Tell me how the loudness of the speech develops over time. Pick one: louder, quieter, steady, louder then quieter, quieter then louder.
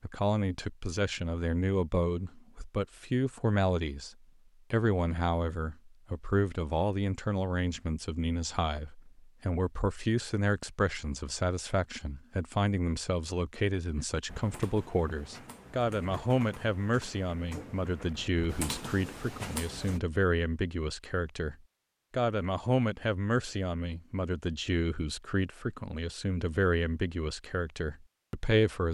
steady.